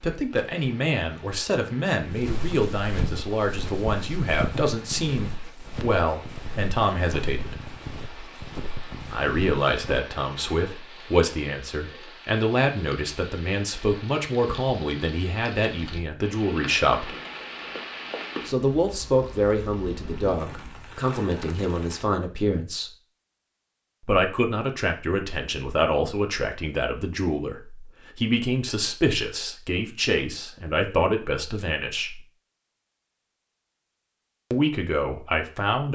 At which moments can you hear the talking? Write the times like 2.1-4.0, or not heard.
0.0-7.6, 9.1-17.1, 18.4-22.9, 24.0-32.2, 34.5-35.9.